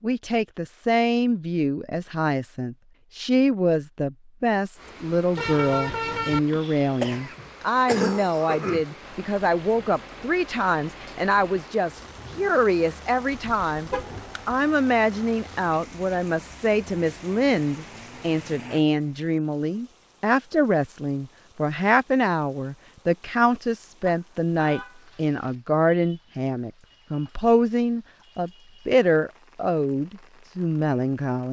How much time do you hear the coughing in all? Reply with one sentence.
You can hear the coughing for 2 seconds altogether.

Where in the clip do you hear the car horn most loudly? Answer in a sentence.
The loudest moment of the car horn is at 6 seconds.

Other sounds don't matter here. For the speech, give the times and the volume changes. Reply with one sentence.
The speech can be heard from 0.0 to 31.4 s, at a steady volume.